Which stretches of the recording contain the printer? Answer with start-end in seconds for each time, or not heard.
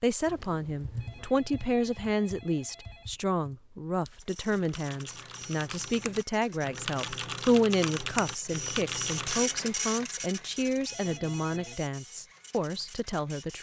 4.2-13.5.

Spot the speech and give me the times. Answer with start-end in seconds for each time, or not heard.
0.0-13.5.